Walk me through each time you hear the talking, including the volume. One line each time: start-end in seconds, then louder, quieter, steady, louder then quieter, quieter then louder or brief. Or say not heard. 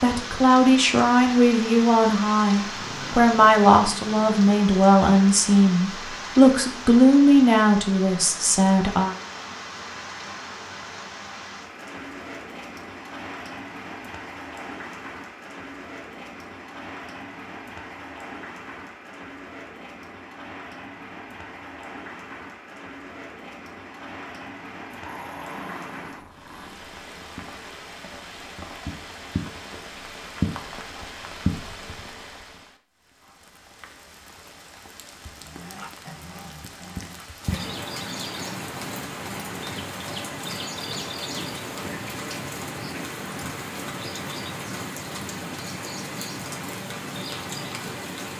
0.0-9.2 steady.